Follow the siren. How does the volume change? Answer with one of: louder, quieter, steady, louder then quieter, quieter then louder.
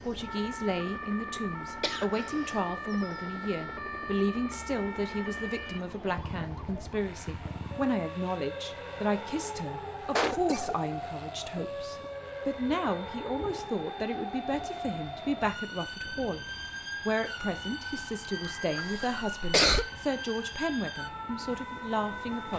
steady.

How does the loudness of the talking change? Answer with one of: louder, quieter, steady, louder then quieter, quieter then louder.
steady.